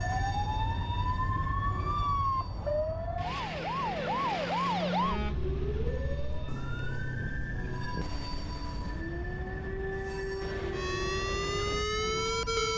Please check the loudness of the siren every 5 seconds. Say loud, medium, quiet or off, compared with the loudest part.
loud, medium, loud.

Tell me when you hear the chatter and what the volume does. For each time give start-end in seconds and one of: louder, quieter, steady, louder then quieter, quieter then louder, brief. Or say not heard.
not heard.